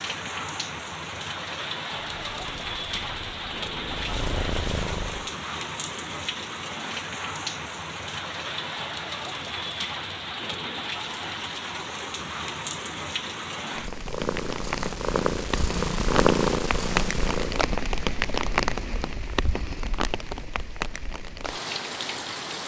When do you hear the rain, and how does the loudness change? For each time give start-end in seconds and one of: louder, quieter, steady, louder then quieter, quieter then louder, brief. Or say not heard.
0.0-22.6 steady.